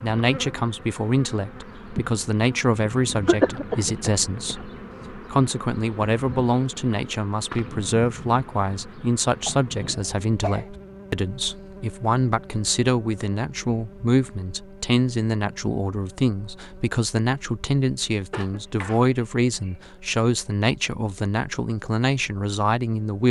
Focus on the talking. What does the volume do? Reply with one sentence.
The loudness of the talking stays about the same.